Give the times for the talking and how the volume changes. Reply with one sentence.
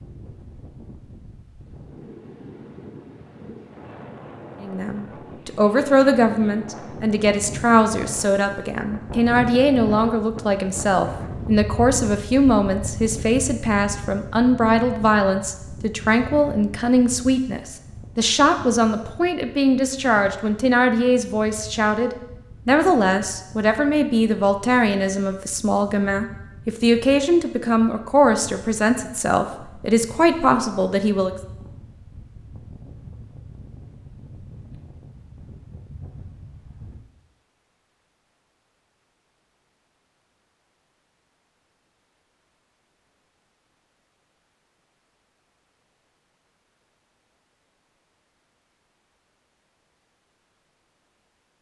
The talking can be heard from 4.6 to 31.4 s, at a steady volume.